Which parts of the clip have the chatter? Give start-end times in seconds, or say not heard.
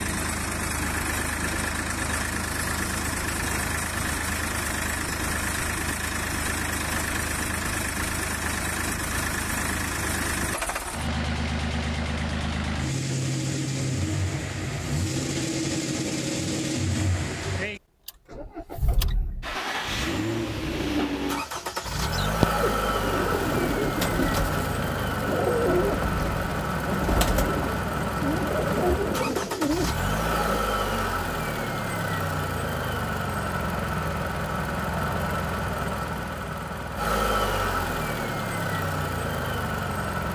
not heard.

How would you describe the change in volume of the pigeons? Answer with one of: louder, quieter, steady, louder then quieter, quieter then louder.
steady.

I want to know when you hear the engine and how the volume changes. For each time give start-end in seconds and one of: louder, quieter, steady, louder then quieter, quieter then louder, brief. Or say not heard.
0.0-40.3 steady.